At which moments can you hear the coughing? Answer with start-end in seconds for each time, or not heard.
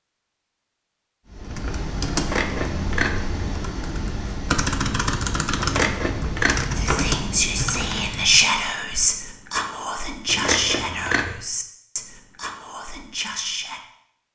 not heard.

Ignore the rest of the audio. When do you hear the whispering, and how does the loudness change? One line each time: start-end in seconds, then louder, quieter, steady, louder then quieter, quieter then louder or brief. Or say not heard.
6.8-13.8 quieter.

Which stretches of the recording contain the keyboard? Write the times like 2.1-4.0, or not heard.
1.3-8.4.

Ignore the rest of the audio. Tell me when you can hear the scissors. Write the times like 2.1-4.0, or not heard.
2.1-3.2, 5.5-6.7, 10.2-11.3.